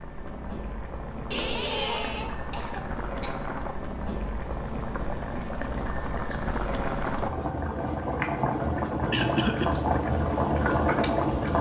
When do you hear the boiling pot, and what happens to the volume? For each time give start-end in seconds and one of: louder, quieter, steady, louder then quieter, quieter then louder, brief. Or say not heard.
0.0-11.5 louder.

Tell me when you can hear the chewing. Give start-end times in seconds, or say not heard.
not heard.